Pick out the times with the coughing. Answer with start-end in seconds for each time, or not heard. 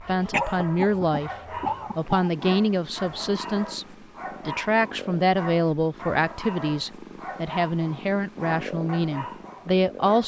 0.3-2.3.